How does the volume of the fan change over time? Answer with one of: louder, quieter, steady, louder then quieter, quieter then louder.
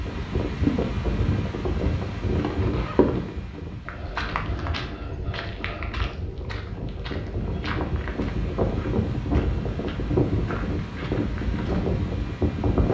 quieter then louder.